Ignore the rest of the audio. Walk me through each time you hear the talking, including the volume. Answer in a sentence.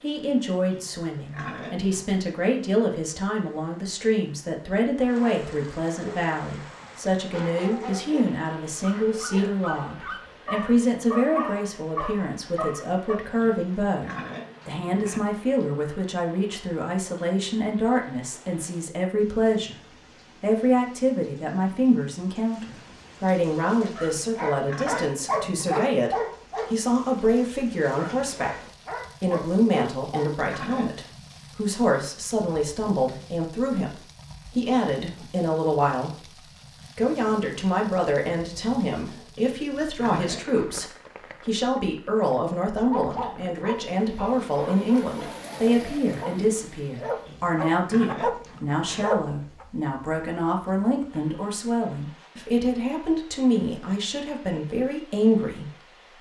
The talking can be heard from 0.0 to 56.0 s, at a steady volume.